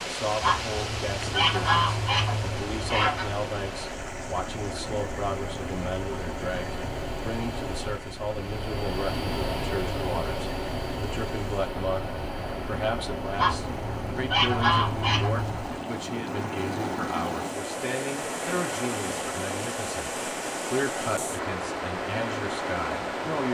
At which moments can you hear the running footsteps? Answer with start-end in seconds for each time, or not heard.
not heard.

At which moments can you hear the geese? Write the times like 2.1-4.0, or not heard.
0.4-3.3, 13.3-15.5.